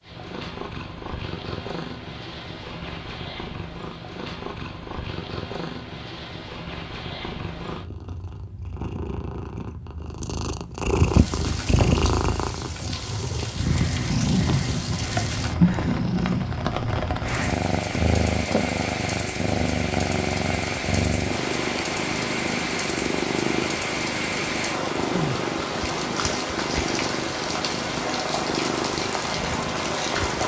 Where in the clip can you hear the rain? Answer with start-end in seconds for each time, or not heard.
10.9-30.4.